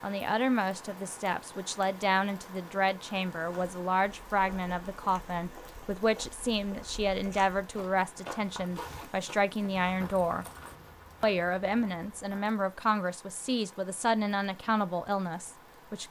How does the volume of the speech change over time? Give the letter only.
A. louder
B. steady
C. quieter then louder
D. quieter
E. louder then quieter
B.